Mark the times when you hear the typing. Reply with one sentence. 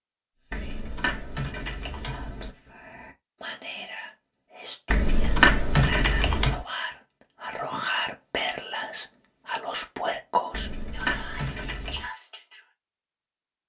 You can hear the typing from 0.5 to 2.5 s, from 4.9 to 6.7 s and from 10.5 to 12.1 s.